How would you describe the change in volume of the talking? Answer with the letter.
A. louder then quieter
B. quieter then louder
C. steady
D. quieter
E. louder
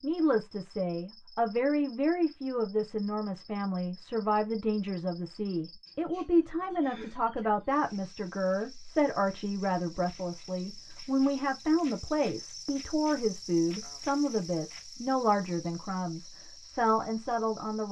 C.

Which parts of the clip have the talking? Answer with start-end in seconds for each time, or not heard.
0.0-17.8.